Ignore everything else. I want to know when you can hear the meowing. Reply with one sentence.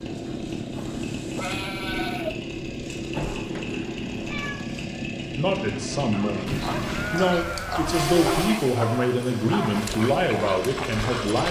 You can hear the meowing from 3.1 to 4.7 s.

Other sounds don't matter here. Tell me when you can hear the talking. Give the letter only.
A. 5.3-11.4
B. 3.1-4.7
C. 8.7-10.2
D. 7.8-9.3
A.